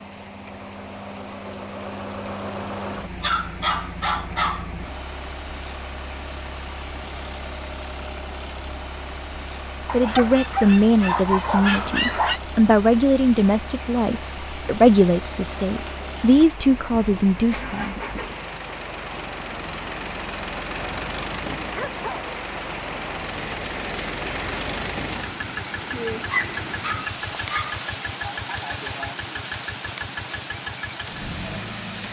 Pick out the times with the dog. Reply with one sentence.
The dog can be heard from 3.2 to 4.9 s, from 9.8 to 12.4 s, from 21.7 to 22.2 s and from 26.3 to 27.8 s.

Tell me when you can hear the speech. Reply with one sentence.
The speech can be heard from 9.9 to 17.9 s.